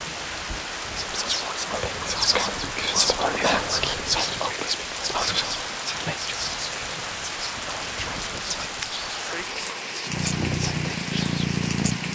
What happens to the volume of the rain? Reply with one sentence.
The loudness of the rain stays about the same.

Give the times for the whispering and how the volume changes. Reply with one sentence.
The whispering can be heard from 0.9 to 11.5 s, getting quieter.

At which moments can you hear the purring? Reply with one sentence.
The purring can be heard from 10.1 to 12.0 s.